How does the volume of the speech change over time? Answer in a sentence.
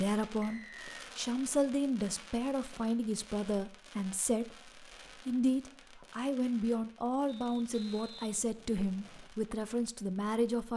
The volume of the speech stays about the same.